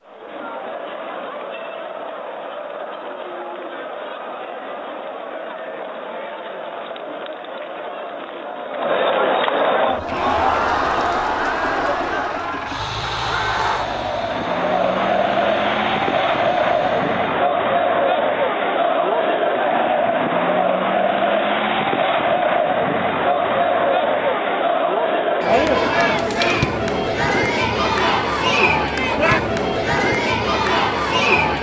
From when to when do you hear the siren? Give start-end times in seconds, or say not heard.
not heard.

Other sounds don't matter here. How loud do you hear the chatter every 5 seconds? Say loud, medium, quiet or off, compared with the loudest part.
quiet, medium, loud, loud, loud, loud, loud.